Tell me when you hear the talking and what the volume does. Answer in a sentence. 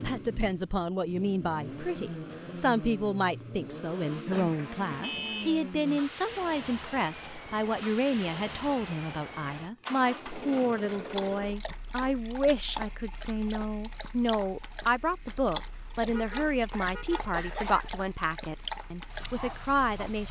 The talking can be heard from 0.0 to 20.2 s, at a steady volume.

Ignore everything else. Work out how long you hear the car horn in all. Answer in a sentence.
The car horn can be heard for 2 seconds in total.